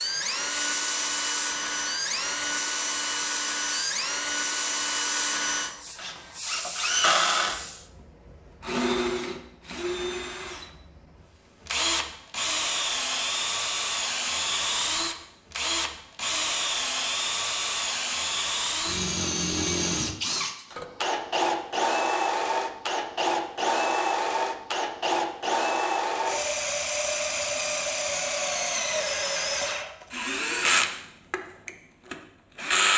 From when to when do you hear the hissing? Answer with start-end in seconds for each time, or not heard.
0.0-7.9.